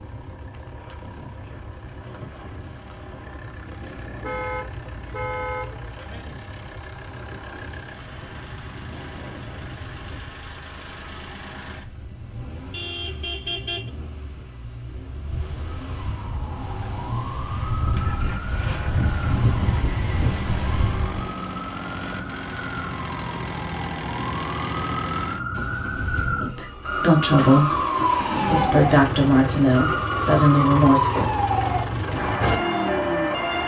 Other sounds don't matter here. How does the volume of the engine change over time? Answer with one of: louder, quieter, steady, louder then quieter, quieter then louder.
louder.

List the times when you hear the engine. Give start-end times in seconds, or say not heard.
0.0-33.6.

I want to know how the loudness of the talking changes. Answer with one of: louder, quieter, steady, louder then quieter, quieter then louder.
quieter then louder.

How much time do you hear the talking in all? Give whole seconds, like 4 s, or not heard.
5 s.